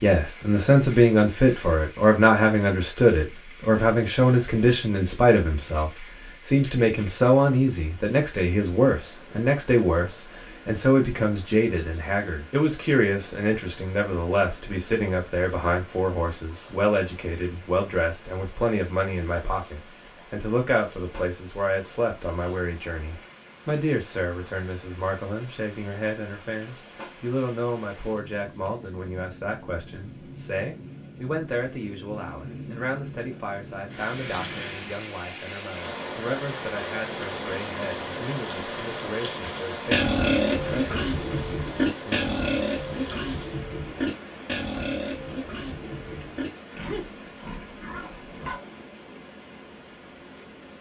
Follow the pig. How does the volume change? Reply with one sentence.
The loudness of the pig goes down.